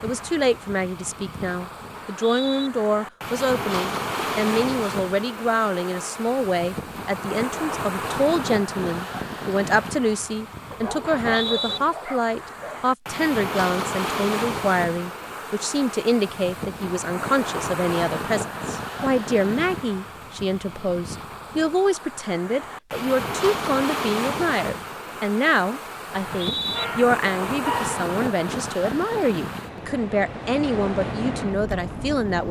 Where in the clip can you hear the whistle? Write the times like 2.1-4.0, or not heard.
1.9-2.7, 11.2-11.8, 26.1-26.9.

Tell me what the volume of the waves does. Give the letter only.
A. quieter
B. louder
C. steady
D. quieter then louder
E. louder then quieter
C.